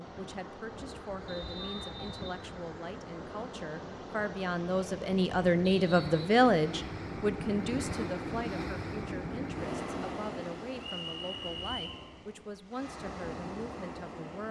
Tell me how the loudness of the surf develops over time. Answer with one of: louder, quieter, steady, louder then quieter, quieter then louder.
louder then quieter.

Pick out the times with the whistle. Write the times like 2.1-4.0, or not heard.
1.2-2.4, 5.8-6.3, 10.8-12.0.